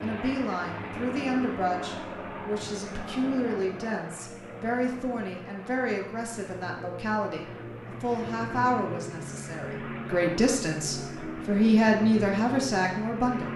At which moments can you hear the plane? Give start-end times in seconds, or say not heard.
0.0-13.5.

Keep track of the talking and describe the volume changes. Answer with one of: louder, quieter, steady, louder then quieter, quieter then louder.
louder.